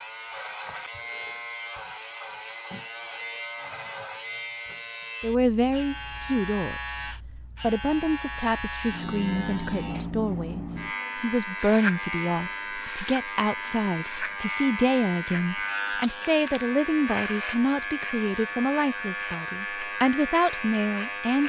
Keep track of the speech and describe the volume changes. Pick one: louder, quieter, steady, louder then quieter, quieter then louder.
steady.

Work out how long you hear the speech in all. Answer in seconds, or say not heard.
16 s.